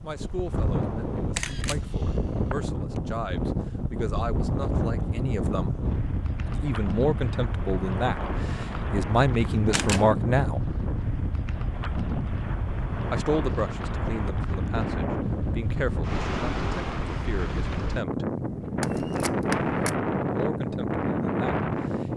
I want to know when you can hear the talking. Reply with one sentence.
You can hear the talking from 0.0 to 5.8 s, from 6.5 to 10.6 s, from 13.1 to 18.2 s and from 20.3 to 22.1 s.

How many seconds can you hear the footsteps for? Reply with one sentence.
You can't hear the footsteps here.